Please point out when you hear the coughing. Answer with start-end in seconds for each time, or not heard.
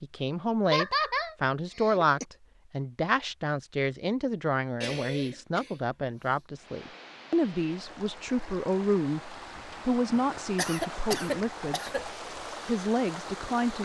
0.7-2.2, 4.8-6.3, 10.2-12.1.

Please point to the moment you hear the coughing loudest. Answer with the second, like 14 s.
1 s.